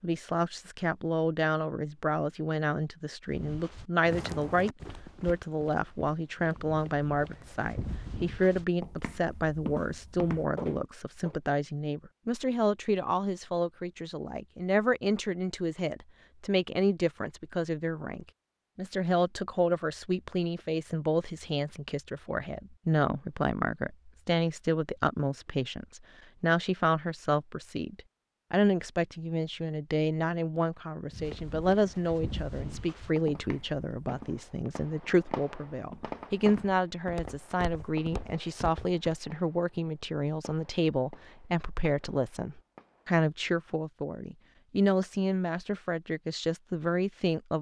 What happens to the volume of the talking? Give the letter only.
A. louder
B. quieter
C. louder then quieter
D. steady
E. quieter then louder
D.